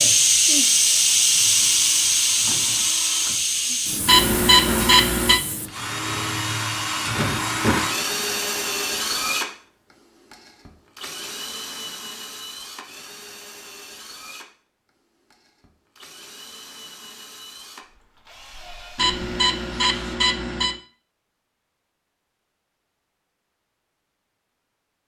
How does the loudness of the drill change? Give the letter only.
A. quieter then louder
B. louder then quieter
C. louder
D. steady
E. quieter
B.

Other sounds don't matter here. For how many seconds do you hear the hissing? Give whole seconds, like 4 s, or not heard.
6 s.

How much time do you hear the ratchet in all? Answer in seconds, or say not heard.
not heard.